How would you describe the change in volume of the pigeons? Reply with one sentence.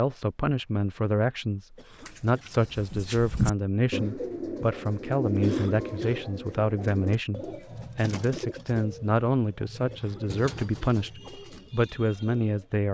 The loudness of the pigeons goes down.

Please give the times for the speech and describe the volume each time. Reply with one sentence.
You can hear the speech from 0.0 to 12.8 s, at a steady volume.